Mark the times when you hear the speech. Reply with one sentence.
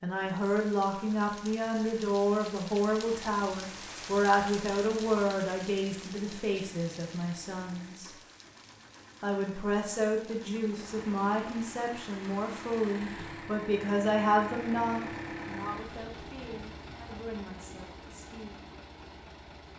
The speech can be heard from 0.0 to 8.1 s and from 9.2 to 18.6 s.